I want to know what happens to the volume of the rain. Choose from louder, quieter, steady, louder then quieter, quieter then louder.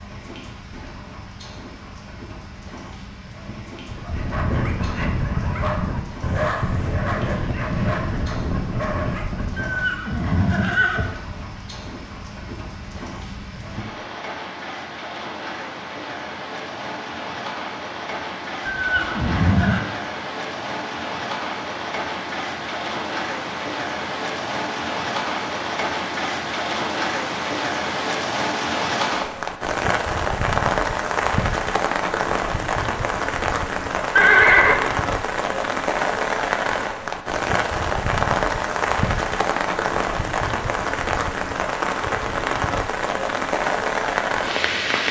louder.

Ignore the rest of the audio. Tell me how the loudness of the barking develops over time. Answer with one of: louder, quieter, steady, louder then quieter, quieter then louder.
steady.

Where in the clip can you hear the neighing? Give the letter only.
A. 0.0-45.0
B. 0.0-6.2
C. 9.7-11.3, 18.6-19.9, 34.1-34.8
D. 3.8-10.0
C.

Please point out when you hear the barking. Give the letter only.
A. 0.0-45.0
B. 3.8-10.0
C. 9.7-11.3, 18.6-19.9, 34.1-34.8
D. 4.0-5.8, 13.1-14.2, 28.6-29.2
B.